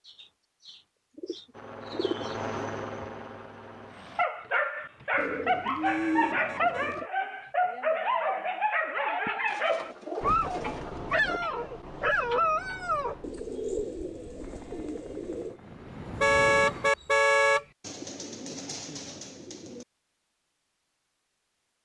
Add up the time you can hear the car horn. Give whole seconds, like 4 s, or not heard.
3 s.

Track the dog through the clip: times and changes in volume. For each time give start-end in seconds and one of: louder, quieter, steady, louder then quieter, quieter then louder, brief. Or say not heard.
4.2-13.2 steady.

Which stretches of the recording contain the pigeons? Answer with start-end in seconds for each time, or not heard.
0.1-2.4, 5.2-7.0, 9.4-11.4, 13.2-15.6, 17.8-19.9.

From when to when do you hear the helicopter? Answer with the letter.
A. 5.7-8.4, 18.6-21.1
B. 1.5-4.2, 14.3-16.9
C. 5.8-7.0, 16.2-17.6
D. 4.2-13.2
B.